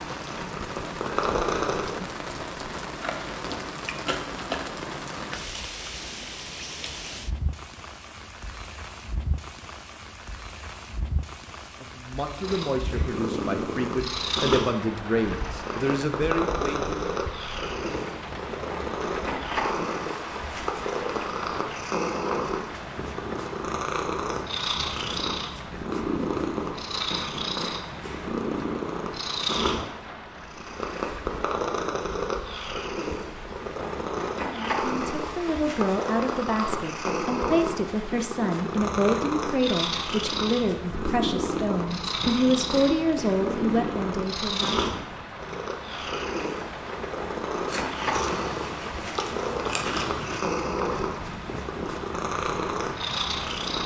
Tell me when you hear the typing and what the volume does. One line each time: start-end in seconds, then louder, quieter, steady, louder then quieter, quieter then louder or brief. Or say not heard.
not heard.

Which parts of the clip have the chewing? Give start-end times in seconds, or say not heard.
3.0-4.8, 47.6-50.5.